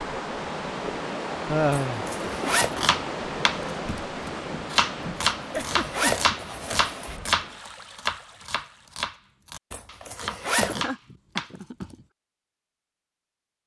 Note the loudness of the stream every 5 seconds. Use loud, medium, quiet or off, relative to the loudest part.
loud, medium, off.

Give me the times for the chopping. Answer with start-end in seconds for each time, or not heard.
2.8-11.9.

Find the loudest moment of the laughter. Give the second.
2 s.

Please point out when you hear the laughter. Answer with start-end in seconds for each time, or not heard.
1.4-2.0, 5.5-6.2, 10.6-11.9.